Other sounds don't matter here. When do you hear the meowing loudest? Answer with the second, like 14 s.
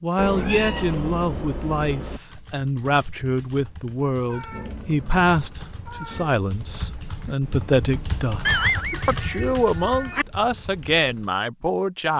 9 s.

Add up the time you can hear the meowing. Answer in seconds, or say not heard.
6 s.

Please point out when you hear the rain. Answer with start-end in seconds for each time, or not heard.
not heard.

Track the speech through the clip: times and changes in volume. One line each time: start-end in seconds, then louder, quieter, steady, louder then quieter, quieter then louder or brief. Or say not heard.
0.0-12.1 steady.